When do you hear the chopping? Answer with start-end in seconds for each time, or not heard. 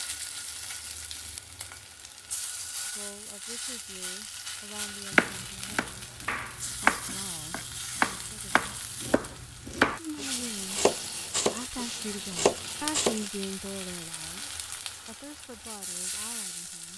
5.1-13.2.